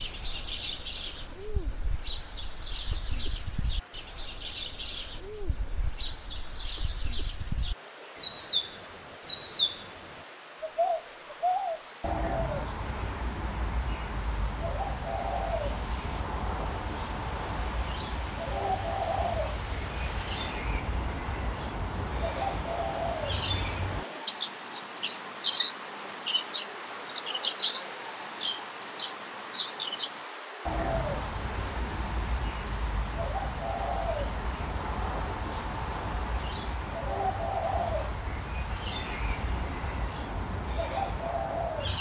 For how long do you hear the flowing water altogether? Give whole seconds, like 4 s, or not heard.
42 s.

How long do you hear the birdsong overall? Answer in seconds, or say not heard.
42 s.